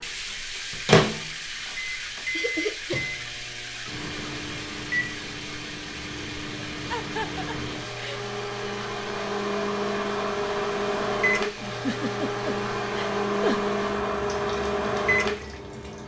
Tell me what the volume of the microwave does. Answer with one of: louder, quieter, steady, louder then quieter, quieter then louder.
quieter then louder.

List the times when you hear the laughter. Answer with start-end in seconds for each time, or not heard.
2.3-3.0, 6.9-8.2, 11.6-13.6.